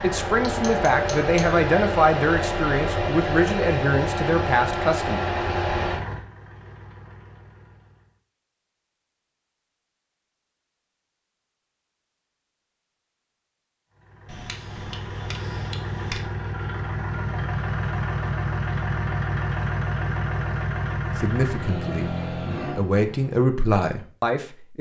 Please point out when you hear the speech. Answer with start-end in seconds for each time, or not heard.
0.0-5.2, 21.1-24.7.